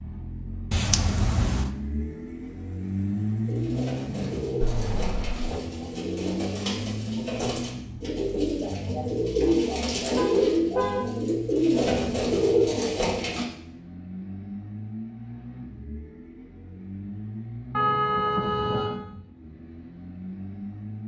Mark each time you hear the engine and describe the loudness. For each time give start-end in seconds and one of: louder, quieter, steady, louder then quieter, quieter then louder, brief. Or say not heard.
0.0-21.0 quieter.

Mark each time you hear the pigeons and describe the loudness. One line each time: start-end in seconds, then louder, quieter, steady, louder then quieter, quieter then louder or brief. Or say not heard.
3.5-13.4 louder.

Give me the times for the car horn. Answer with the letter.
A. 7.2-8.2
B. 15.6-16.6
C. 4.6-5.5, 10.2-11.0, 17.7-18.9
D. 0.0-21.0
C.